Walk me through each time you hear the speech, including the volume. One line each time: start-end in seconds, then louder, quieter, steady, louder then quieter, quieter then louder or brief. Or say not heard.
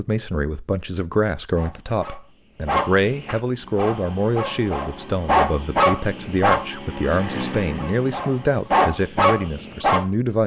0.0-10.4 steady.